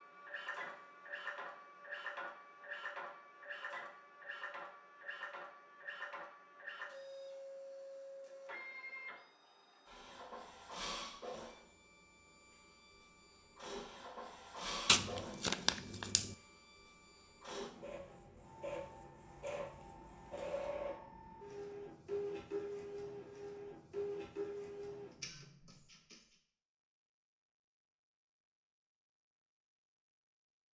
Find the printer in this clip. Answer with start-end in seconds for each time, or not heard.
0.0-26.4.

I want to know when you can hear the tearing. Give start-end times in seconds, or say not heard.
14.8-16.4.